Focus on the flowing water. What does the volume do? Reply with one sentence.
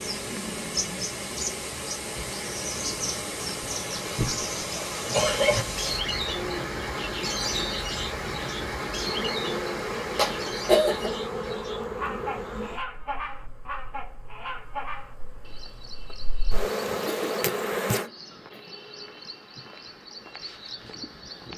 The volume of the flowing water stays about the same.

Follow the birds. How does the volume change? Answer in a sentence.
The loudness of the birds goes down.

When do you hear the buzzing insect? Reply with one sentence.
You can hear the buzzing insect from 5.0 to 18.1 s.